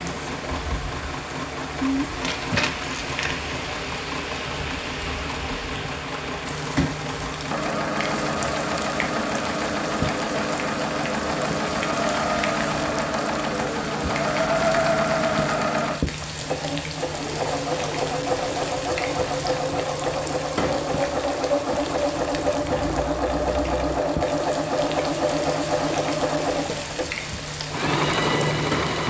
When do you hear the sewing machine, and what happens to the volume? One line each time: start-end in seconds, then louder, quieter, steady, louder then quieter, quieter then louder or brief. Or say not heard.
0.0-29.0 louder.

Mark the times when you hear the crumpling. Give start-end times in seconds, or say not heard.
2.2-3.5.